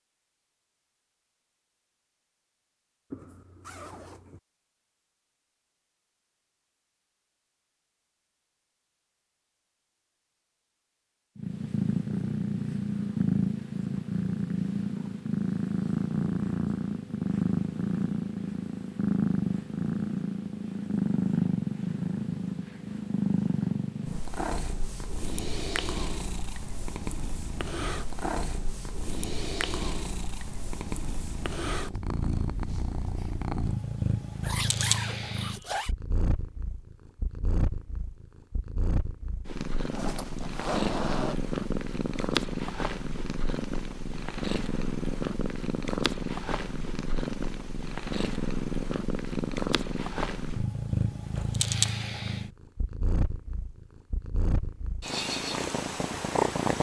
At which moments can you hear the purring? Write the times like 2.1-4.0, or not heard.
11.3-56.7.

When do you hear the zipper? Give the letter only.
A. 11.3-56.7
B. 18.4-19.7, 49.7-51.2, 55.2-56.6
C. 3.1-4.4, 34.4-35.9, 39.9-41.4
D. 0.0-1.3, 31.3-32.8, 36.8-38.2
C.